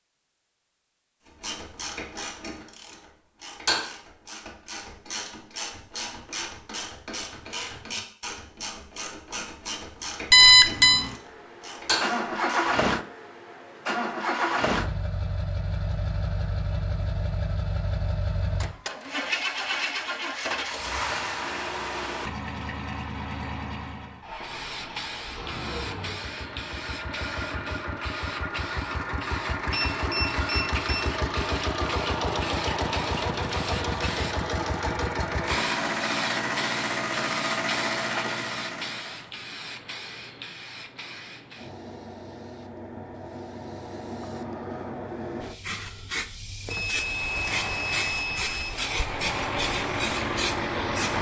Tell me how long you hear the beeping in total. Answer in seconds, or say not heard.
4 s.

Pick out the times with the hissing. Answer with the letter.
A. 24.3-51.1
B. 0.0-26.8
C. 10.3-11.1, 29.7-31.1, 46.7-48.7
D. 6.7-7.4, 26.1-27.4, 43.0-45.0
A.